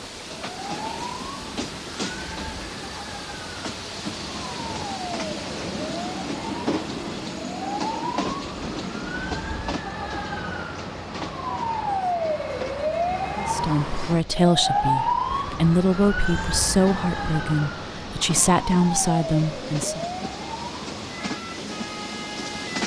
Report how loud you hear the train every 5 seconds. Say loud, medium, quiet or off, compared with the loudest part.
loud, loud, medium, medium, loud.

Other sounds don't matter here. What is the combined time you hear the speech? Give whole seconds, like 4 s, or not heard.
7 s.